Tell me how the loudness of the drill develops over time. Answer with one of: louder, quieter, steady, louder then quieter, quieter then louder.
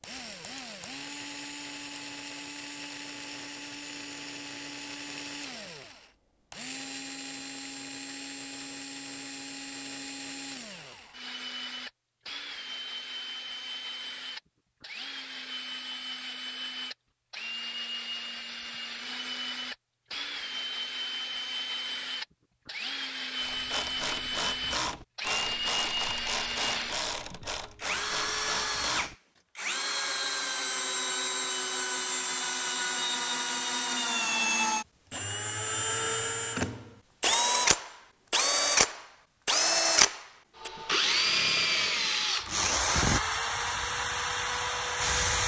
louder.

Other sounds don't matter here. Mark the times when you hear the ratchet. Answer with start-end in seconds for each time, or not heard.
23.4-29.1.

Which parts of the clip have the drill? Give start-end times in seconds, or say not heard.
0.0-45.4.